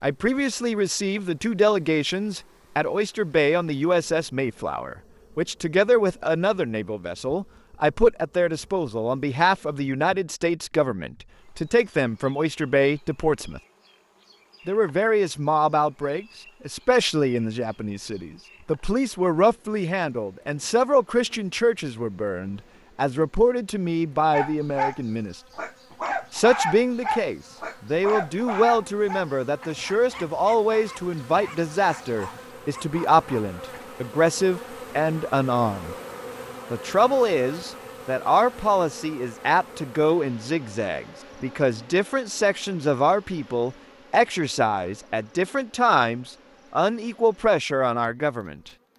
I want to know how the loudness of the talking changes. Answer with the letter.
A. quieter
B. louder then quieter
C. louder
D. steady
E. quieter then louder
D.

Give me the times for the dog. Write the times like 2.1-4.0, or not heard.
24.3-33.9.